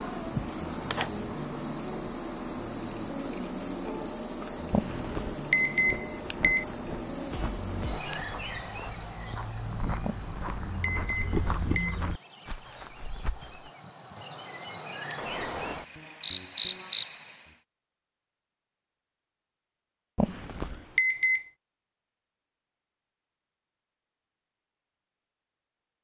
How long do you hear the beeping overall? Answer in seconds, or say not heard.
5 s.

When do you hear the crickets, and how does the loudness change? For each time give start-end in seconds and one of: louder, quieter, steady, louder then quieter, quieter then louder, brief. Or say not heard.
0.0-17.4 quieter then louder.